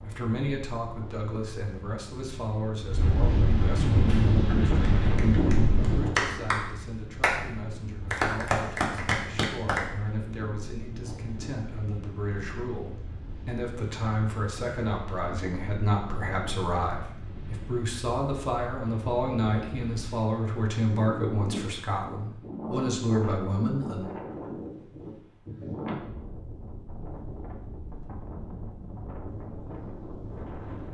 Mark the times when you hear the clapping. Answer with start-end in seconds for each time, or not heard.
4.0-7.3, 8.1-9.8.